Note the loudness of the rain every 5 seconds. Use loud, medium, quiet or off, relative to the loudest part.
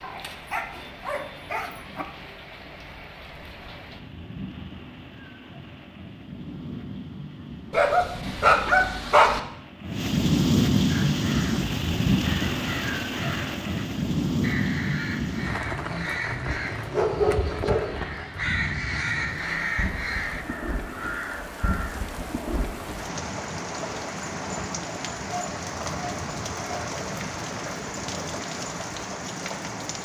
quiet, quiet, loud, medium, medium, medium.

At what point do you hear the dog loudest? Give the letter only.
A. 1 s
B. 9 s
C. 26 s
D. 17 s
B.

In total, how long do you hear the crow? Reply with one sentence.
You can hear the crow for 11 seconds altogether.